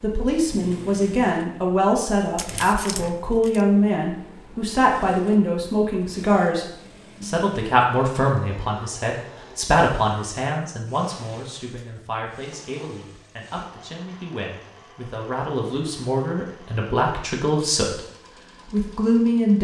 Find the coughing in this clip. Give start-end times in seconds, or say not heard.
not heard.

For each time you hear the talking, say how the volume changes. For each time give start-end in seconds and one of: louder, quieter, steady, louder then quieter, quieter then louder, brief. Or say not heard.
0.0-18.0 quieter then louder
18.7-19.5 brief.